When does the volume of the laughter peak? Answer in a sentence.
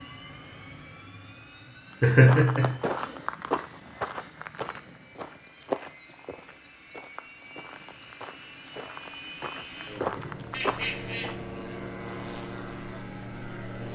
The volume of the laughter peaks at 2 seconds.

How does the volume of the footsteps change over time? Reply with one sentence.
The loudness of the footsteps goes down, then up.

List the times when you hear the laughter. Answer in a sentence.
You can hear the laughter from 2.0 to 2.8 s and from 10.5 to 11.8 s.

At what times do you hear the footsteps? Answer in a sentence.
You can hear the footsteps from 1.9 to 11.3 s.